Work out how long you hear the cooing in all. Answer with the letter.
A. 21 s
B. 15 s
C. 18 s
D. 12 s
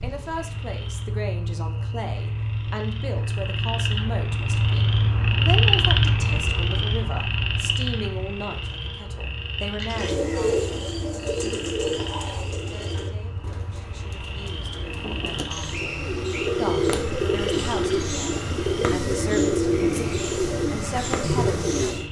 D.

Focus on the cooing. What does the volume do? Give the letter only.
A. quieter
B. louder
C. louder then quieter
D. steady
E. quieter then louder
E.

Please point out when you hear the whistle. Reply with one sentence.
The whistle can be heard from 15.7 to 16.6 s.